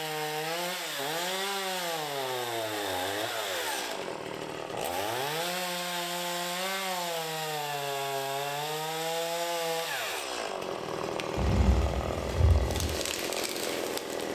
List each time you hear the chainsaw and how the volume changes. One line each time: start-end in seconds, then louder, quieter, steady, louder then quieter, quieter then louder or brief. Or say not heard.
0.0-14.3 steady.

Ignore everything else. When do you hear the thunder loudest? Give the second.
12 s.